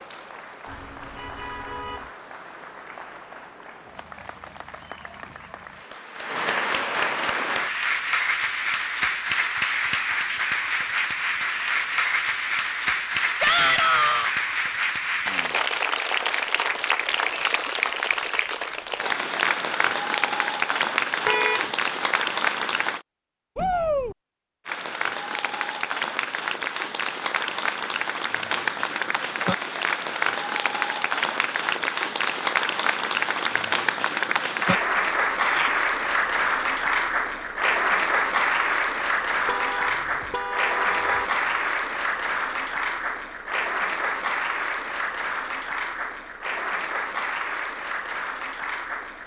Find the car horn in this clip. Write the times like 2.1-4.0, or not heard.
0.7-2.1, 21.2-21.7, 39.5-41.4.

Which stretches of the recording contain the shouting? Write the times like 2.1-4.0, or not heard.
13.4-14.3, 23.6-24.1, 35.4-35.9.